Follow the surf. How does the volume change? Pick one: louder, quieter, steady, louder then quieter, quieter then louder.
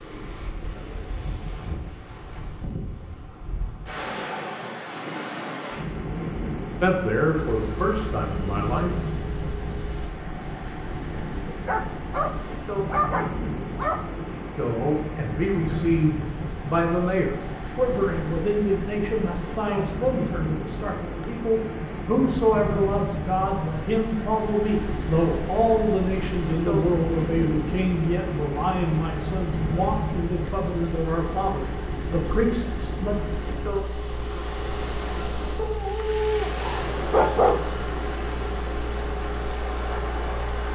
steady.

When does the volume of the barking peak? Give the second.
37 s.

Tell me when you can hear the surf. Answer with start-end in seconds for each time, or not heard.
0.0-40.7.